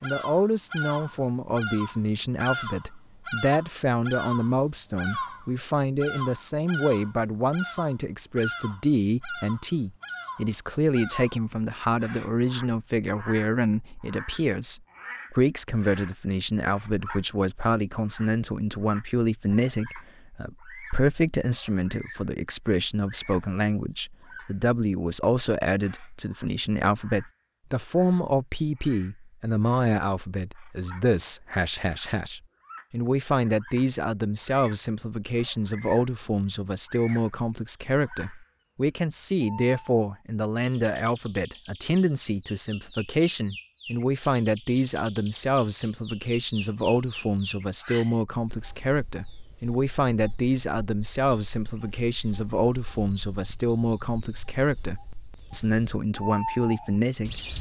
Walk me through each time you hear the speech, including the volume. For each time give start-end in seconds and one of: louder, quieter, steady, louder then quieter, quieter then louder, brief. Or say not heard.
0.0-57.5 steady.